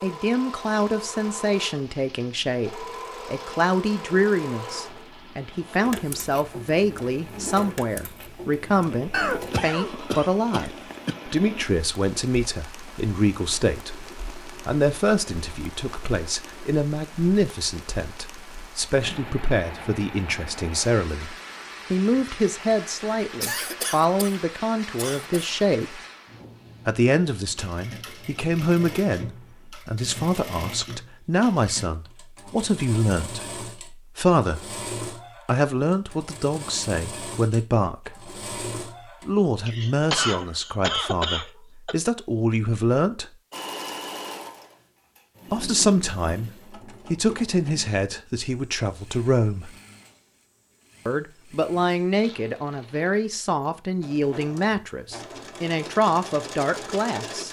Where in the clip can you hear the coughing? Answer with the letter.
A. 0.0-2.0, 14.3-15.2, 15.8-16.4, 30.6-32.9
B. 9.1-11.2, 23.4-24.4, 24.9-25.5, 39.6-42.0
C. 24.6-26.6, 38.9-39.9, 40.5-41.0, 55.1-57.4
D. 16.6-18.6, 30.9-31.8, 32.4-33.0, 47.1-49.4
B.